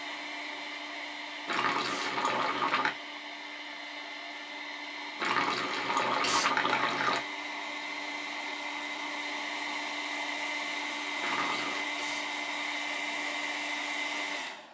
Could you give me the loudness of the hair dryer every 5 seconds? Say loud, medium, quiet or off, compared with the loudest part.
medium, loud, loud.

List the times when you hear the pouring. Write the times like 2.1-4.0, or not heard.
1.4-3.0, 5.2-7.2, 11.2-11.8.